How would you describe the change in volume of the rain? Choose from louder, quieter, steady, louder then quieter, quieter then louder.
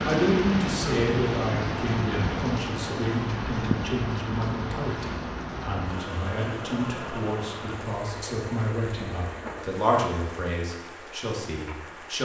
quieter.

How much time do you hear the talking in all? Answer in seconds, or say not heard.
12 s.